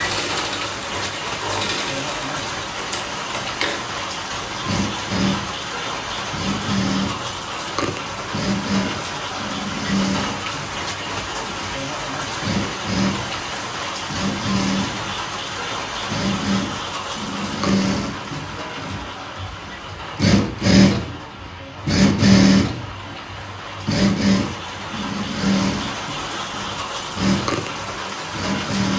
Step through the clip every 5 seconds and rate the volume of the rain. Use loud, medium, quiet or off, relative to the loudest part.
loud, loud, loud, loud, medium, loud.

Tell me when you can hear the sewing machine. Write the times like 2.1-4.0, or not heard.
0.0-28.9.